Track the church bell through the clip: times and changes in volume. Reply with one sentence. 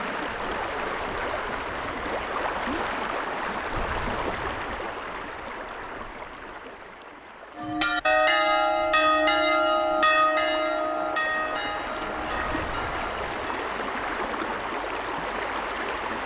You can hear the church bell from 7.5 to 13.7 s, getting quieter.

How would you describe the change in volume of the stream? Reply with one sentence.
The loudness of the stream goes down, then up.